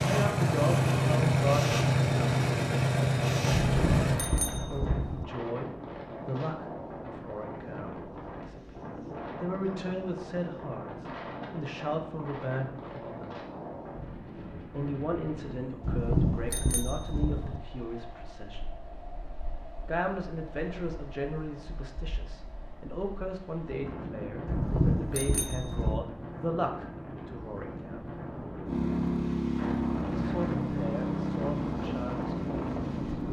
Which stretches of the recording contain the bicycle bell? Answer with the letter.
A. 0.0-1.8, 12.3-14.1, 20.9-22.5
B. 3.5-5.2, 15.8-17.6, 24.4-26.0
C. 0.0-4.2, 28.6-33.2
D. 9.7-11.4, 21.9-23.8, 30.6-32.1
B.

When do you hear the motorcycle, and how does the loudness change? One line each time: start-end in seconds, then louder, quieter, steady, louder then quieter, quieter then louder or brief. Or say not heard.
0.0-4.2 steady
28.6-33.2 quieter.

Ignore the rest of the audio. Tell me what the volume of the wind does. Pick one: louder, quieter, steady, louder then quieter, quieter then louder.
quieter then louder.